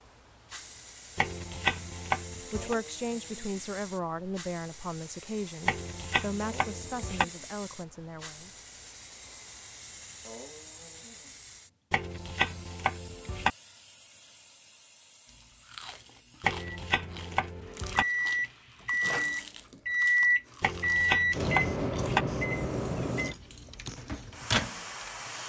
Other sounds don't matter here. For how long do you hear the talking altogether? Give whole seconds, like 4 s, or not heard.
6 s.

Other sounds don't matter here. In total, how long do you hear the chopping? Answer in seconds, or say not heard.
8 s.